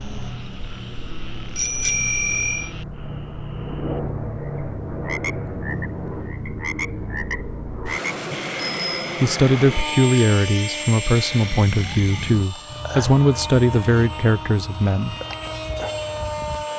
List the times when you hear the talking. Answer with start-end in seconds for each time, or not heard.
9.2-15.2.